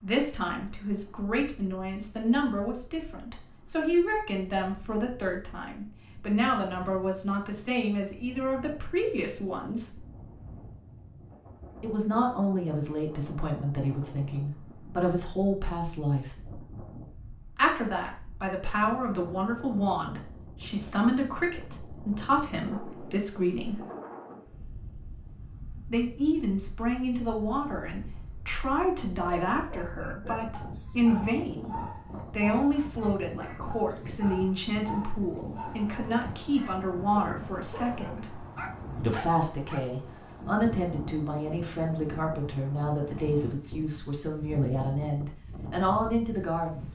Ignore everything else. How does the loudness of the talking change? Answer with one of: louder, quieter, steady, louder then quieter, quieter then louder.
steady.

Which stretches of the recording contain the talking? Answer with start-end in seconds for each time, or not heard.
0.0-10.0, 11.8-16.3, 17.6-23.8, 25.9-38.4, 39.0-46.9.